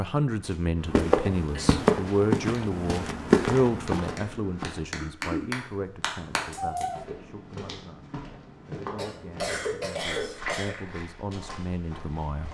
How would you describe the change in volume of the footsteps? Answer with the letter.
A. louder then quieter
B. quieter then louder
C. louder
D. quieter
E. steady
D.